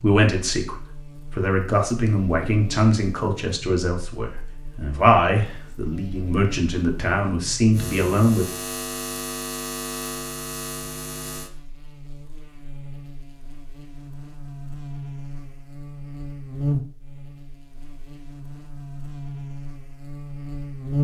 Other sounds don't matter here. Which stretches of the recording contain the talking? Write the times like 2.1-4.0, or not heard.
0.0-8.4.